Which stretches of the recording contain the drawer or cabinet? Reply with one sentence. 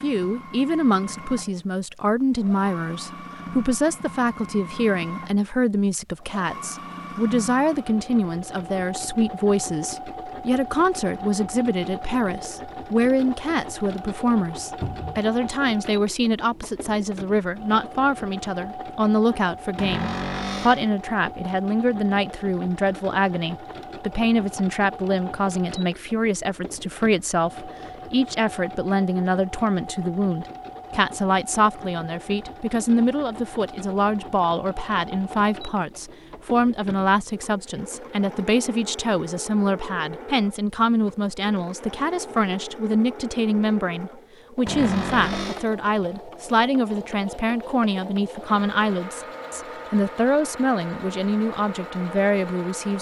You can hear the drawer or cabinet from 14.8 to 15.2 s, from 19.8 to 20.9 s and from 44.6 to 45.6 s.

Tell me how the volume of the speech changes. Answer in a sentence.
The volume of the speech stays about the same.